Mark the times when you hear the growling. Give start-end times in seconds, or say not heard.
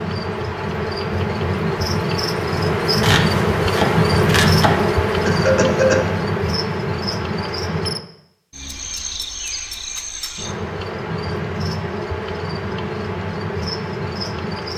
not heard.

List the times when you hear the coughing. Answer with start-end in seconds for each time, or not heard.
5.2-6.0.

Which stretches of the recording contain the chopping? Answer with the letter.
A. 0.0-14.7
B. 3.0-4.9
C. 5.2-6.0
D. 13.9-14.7
B.